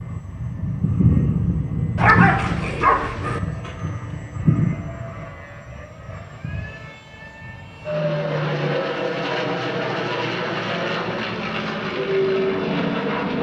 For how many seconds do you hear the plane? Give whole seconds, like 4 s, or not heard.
13 s.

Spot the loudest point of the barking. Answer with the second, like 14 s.
2 s.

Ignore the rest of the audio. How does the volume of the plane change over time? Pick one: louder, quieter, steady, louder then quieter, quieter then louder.
quieter then louder.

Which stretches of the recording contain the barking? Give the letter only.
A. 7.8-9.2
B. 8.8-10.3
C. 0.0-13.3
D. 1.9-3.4
D.